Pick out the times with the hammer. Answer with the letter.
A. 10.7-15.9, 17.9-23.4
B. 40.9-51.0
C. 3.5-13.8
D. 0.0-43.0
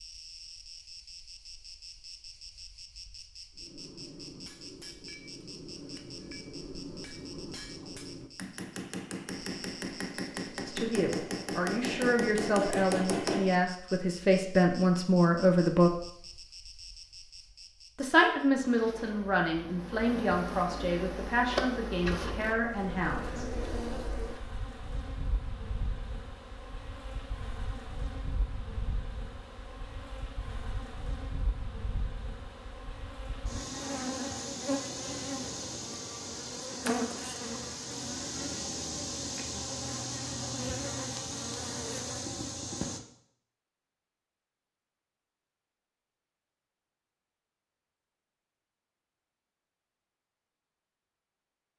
C.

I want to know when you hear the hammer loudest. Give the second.
13 s.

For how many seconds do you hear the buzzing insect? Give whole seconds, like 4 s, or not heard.
43 s.